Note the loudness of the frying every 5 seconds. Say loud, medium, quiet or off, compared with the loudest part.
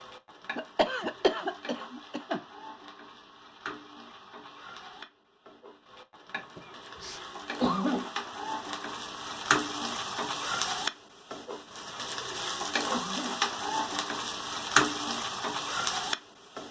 quiet, medium, loud, loud.